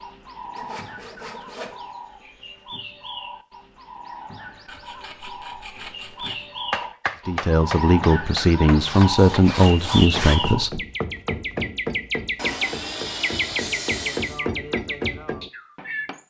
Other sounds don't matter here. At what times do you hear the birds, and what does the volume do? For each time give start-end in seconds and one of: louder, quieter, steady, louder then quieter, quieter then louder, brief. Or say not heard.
0.0-16.2 louder.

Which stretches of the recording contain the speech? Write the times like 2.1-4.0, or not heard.
7.2-10.8.